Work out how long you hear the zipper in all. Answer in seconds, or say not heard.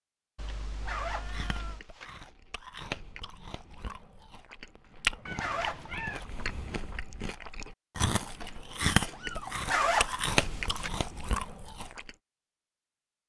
3 s.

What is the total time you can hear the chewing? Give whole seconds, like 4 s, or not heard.
11 s.